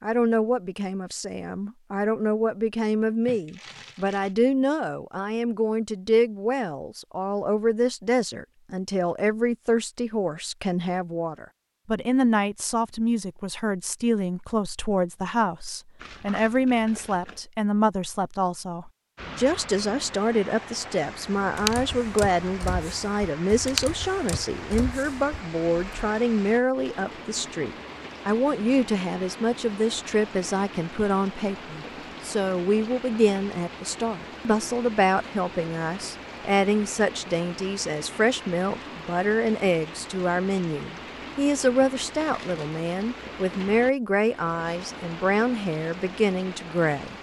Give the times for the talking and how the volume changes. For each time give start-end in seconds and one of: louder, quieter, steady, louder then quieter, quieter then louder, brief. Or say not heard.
0.0-47.1 steady.